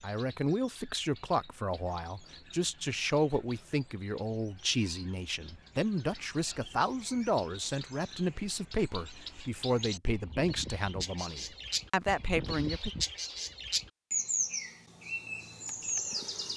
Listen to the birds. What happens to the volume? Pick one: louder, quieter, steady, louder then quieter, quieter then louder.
louder.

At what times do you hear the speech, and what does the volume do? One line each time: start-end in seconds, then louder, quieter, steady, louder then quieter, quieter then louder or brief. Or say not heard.
0.0-12.9 steady.